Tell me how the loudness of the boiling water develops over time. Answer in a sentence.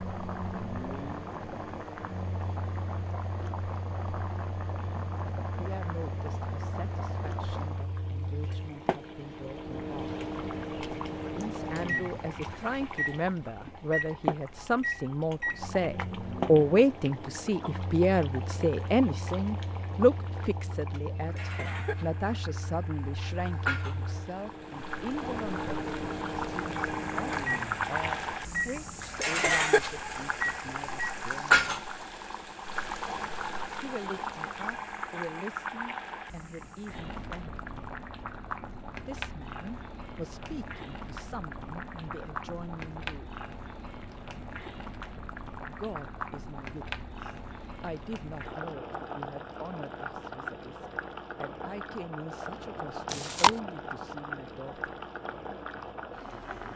The loudness of the boiling water goes up, then down.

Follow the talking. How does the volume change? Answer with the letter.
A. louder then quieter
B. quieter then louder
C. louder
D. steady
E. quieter
A.